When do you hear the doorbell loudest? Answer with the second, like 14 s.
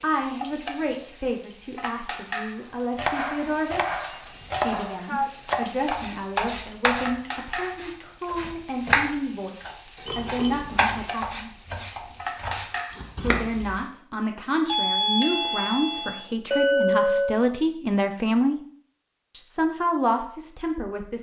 15 s.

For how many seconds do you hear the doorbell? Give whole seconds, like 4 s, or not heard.
2 s.